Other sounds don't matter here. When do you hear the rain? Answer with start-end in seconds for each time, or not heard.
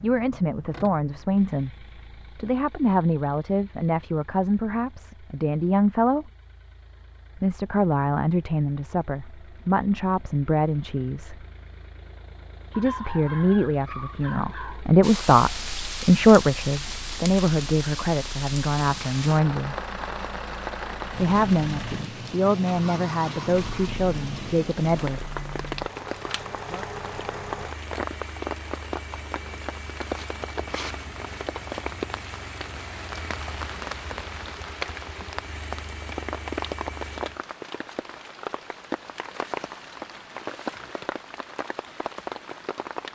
15.0-43.1.